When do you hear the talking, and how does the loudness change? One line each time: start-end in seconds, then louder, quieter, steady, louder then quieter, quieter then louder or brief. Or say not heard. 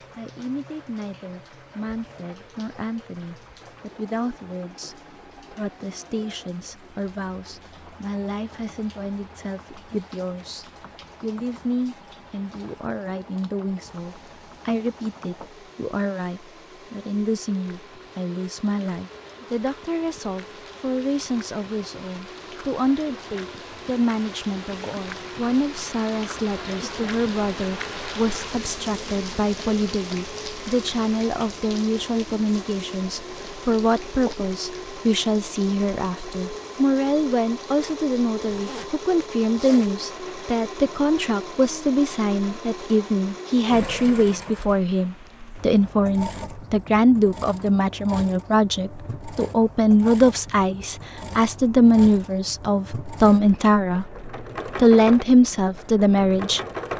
0.1-54.0 louder
54.8-56.6 brief.